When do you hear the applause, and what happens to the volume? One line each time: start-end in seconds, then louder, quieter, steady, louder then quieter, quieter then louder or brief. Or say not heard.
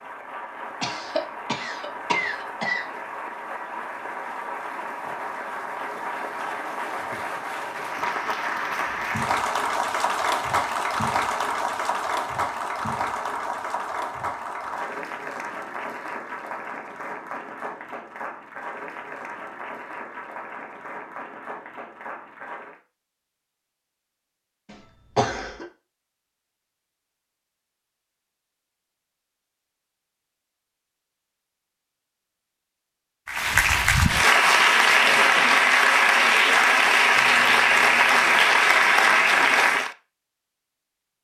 0.0-22.8 louder then quieter
33.2-40.0 steady.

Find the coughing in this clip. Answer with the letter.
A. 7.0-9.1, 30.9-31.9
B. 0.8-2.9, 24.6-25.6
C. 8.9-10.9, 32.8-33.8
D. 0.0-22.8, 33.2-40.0
B.